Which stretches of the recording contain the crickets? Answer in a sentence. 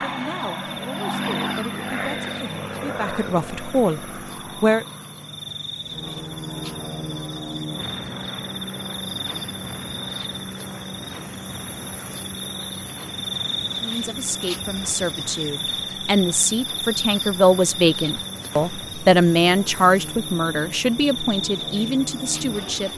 The crickets can be heard from 0.0 to 22.9 s.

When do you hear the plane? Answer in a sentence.
You can hear the plane from 0.0 to 22.9 s.